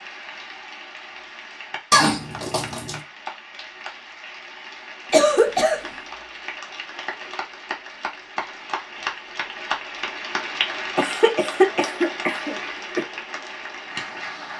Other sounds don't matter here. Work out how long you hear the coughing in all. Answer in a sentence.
You can hear the coughing for 4 seconds altogether.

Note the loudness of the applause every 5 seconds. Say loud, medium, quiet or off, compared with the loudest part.
medium, loud, loud.